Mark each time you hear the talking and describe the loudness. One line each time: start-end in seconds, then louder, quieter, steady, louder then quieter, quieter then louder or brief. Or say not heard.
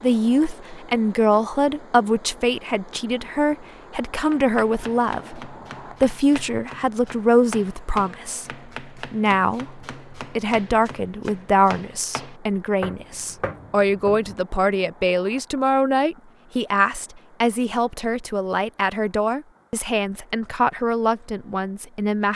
0.0-22.3 steady.